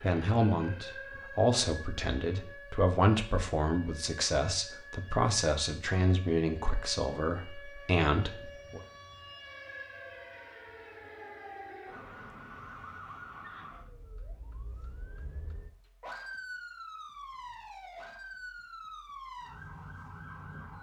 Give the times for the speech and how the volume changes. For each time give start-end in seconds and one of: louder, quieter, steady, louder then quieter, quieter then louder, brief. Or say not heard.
0.0-8.8 steady.